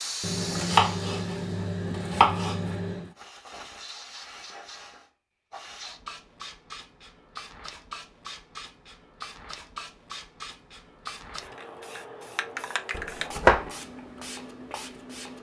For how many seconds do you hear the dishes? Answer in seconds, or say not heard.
not heard.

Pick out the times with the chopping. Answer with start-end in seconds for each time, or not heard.
0.2-3.1, 12.9-13.7.